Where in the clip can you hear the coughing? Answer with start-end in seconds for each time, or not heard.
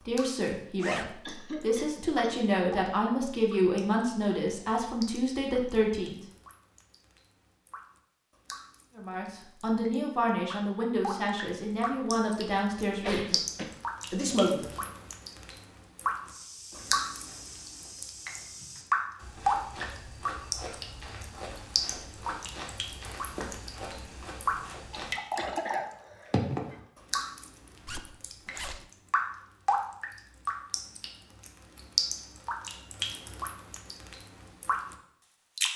1.2-2.3, 12.9-13.8, 25.4-26.8.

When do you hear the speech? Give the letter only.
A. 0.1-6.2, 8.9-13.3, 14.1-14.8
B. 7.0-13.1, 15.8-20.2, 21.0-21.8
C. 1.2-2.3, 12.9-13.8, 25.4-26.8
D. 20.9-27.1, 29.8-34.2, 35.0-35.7
A.